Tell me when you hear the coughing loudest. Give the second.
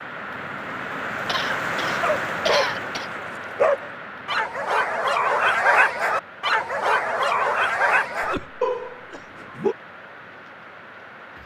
3 s.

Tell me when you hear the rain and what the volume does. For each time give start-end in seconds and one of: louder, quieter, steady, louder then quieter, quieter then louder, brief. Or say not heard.
0.0-11.4 quieter.